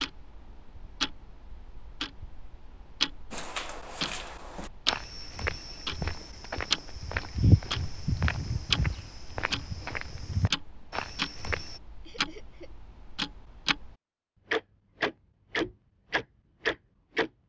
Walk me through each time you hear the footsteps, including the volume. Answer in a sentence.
You can hear the footsteps from 3.3 to 11.8 s, getting louder then quieter.